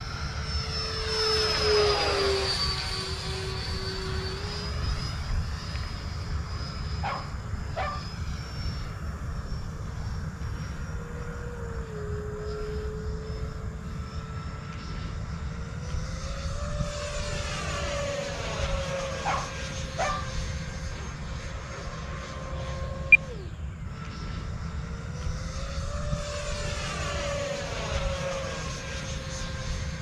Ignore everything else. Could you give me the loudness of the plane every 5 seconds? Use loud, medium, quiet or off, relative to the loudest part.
loud, medium, medium, medium, loud, medium.